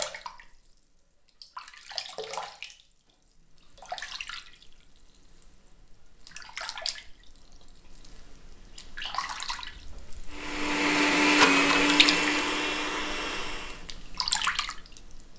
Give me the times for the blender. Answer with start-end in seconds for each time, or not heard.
10.3-13.8.